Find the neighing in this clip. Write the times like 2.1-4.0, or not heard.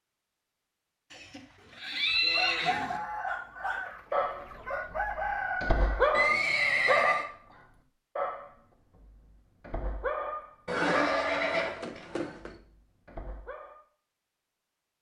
1.1-3.0, 6.1-7.2, 10.7-12.6.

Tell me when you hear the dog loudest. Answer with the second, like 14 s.
6 s.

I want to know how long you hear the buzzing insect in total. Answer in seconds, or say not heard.
not heard.